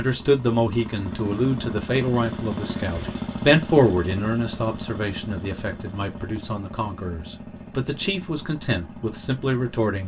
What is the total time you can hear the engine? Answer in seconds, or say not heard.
10 s.